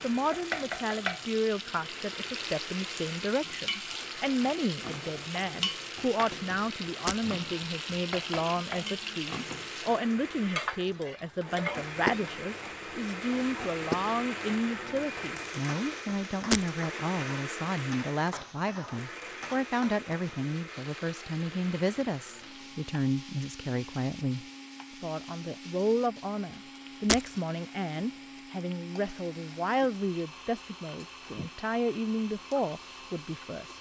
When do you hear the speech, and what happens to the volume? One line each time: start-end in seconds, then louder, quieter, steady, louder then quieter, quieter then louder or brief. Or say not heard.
0.0-33.7 steady.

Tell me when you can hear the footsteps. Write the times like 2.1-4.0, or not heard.
not heard.